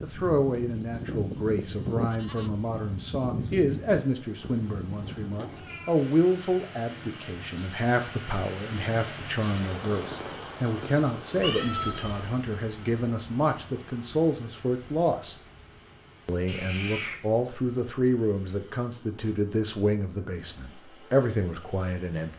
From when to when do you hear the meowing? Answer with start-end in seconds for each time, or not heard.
5.0-6.0, 11.4-12.3, 16.4-17.2.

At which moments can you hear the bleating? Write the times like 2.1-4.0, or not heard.
0.0-5.2.